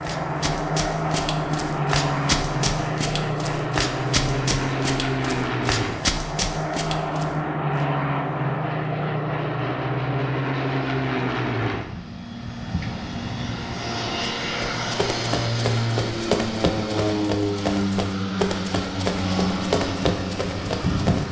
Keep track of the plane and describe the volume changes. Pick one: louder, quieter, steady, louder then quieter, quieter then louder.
steady.